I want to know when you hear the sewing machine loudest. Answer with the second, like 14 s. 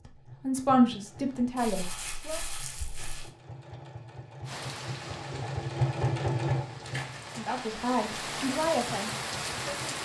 6 s.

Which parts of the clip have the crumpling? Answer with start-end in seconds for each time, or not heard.
1.6-3.3, 6.8-7.6.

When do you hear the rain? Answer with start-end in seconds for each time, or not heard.
4.5-10.0.